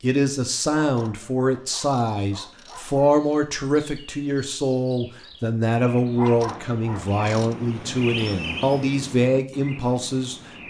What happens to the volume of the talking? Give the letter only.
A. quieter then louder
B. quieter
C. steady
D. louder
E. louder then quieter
C.